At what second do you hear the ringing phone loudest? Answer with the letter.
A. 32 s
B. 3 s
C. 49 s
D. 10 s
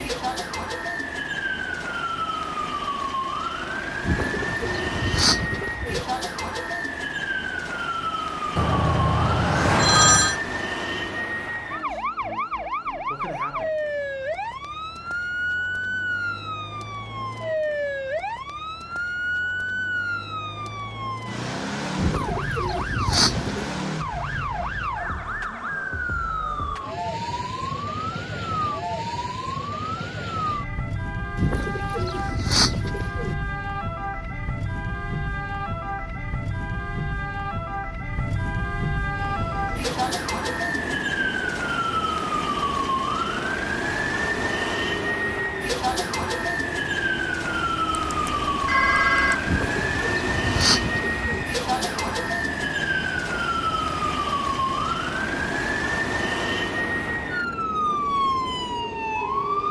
D.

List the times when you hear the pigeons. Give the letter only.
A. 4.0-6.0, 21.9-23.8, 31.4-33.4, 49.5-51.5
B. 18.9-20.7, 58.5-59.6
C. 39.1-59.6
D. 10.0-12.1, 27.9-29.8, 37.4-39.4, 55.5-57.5
A.